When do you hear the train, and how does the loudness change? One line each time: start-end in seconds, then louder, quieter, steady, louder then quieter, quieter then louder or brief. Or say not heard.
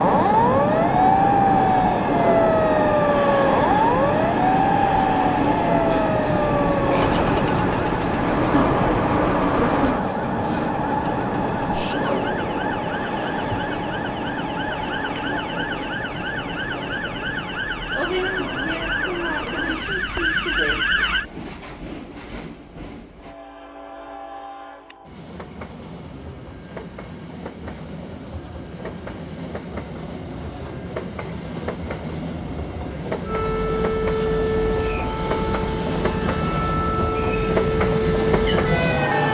0.0-39.2 quieter then louder.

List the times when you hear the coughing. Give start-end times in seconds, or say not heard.
not heard.